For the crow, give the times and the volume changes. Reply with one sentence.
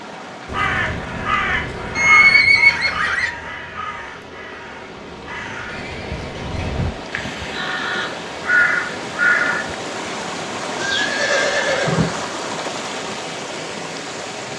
The crow can be heard from 0.5 to 9.8 s, getting quieter then louder.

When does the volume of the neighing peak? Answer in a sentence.
The volume of the neighing peaks at 2 seconds.